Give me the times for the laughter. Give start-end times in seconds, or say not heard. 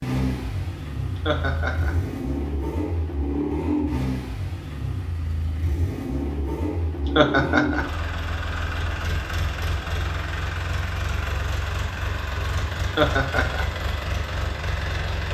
1.1-1.9, 7.0-7.8, 12.8-13.7.